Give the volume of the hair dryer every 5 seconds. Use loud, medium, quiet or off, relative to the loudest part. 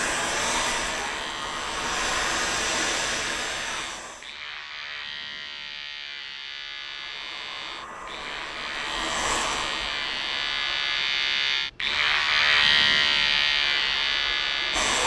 loud, medium, medium.